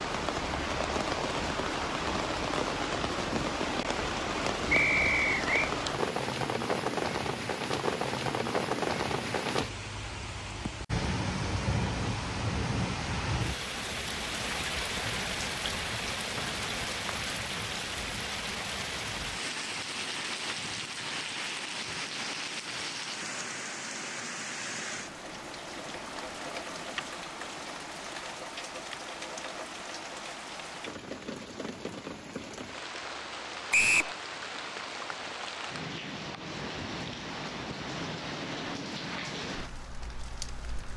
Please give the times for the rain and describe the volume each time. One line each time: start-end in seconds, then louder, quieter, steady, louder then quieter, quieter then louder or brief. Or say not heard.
0.0-40.9 quieter.